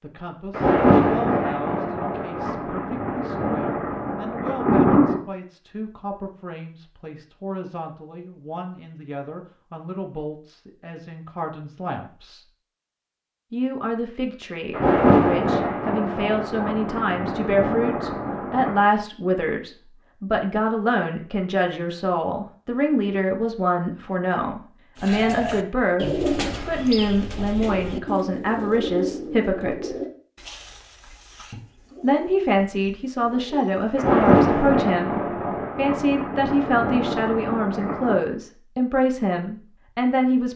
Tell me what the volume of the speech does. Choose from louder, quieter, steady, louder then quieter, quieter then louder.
louder.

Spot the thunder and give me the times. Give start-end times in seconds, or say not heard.
0.5-5.2, 14.7-18.9, 34.0-38.2.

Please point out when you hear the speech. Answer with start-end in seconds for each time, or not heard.
0.0-12.4, 13.5-29.9, 32.0-40.5.